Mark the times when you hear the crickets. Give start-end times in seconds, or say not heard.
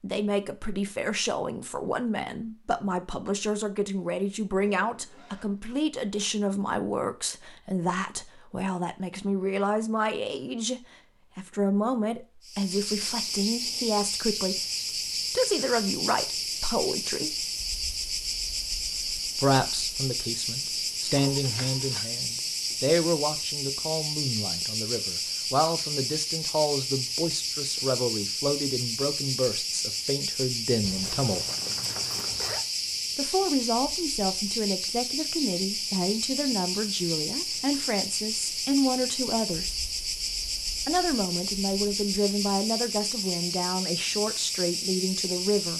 12.4-45.7.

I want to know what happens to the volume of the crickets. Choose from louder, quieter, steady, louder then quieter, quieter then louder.
steady.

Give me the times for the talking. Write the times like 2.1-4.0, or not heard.
0.0-14.6, 15.3-17.4, 19.4-31.4, 33.1-39.8, 40.9-45.7.